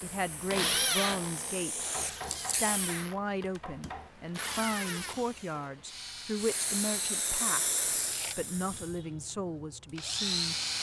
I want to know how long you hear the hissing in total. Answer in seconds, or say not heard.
6 s.